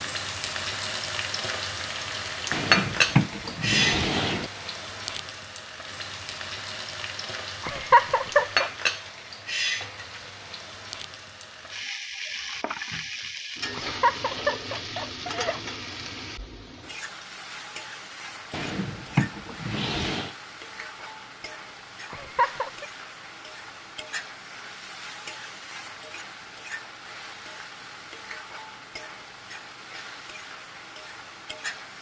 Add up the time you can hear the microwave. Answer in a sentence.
The microwave can't be heard in this clip.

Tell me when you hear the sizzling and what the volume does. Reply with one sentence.
You can hear the sizzling from 0.0 to 31.9 s, getting quieter.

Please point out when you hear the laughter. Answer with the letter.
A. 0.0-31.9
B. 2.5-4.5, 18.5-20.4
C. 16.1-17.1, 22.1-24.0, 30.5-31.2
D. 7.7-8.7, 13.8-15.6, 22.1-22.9
D.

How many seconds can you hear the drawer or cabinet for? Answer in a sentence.
You can hear the drawer or cabinet for 4 seconds altogether.